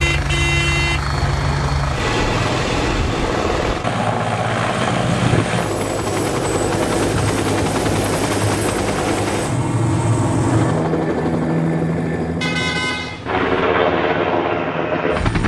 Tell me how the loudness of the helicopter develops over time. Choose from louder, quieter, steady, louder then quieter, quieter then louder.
steady.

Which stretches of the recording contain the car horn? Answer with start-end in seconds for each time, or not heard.
0.0-1.9, 12.4-13.7.